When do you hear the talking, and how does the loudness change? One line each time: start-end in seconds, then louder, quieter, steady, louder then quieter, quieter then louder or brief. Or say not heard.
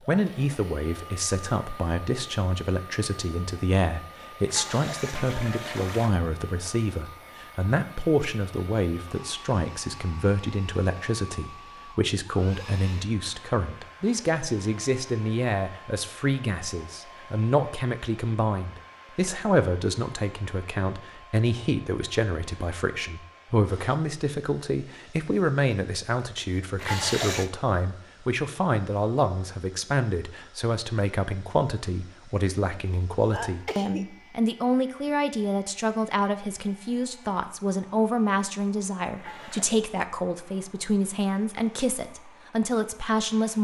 0.1-43.5 steady.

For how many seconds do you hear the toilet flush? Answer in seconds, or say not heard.
3 s.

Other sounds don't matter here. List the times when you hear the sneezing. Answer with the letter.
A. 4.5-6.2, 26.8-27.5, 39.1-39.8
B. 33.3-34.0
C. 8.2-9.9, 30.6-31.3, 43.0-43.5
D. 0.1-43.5
B.